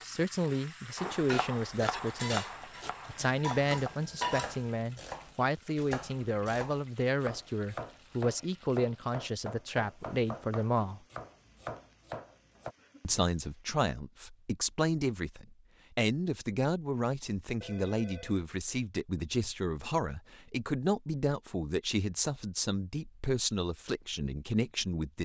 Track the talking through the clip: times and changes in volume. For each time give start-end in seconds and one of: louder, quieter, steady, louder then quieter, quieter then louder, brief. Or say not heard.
0.0-2.5 brief
3.0-11.0 steady
13.0-25.2 steady.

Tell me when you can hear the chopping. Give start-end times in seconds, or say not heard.
0.9-12.8.